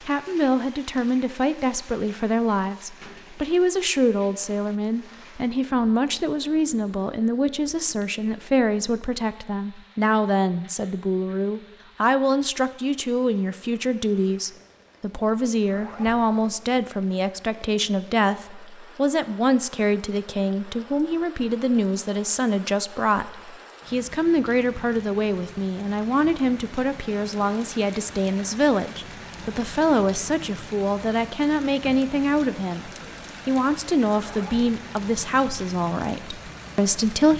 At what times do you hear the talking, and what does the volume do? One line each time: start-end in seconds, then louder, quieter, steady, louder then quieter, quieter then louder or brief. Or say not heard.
0.1-37.3 steady.